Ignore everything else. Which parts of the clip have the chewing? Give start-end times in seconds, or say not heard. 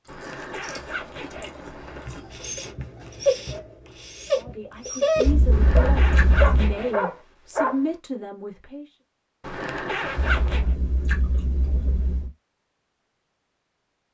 0.2-2.2, 5.2-6.8, 10.2-12.3.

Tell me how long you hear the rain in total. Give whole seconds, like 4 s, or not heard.
not heard.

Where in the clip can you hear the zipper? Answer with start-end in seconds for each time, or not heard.
0.1-2.1, 5.5-7.0, 9.4-10.8.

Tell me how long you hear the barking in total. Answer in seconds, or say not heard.
6 s.